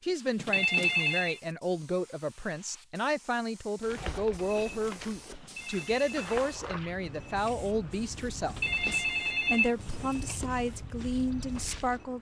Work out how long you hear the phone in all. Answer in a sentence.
The phone can be heard for 4 seconds in total.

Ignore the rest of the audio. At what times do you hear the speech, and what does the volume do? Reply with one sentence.
You can hear the speech from 0.0 to 12.1 s, at a steady volume.